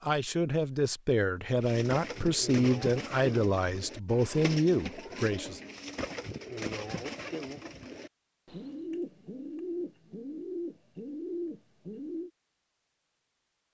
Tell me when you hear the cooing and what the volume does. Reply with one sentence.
The cooing can be heard from 1.6 to 12.3 s, at a steady volume.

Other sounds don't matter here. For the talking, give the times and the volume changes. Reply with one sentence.
You can hear the talking from 0.0 to 5.6 s, at a steady volume.